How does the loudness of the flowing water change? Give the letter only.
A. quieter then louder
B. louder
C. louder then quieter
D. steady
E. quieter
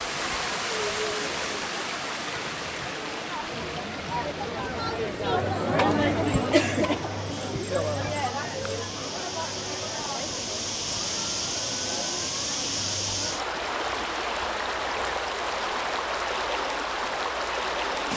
A.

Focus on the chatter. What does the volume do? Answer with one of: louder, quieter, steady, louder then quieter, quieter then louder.
louder then quieter.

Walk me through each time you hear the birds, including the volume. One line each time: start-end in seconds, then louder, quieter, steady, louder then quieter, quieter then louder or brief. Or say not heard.
not heard.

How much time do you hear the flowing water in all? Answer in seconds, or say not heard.
18 s.